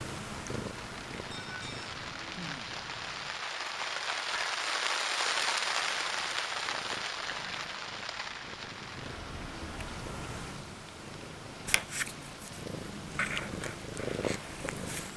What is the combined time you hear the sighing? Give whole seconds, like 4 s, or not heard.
2 s.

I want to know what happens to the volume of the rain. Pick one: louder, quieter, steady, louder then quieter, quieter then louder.
louder then quieter.